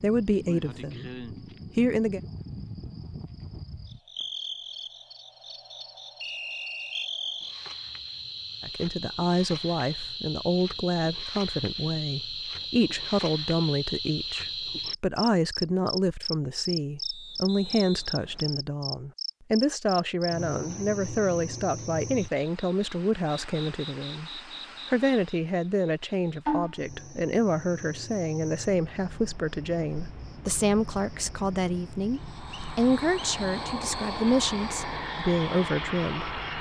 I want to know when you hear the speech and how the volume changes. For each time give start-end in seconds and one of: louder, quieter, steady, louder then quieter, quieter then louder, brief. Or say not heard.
0.0-2.2 brief
8.6-36.4 steady.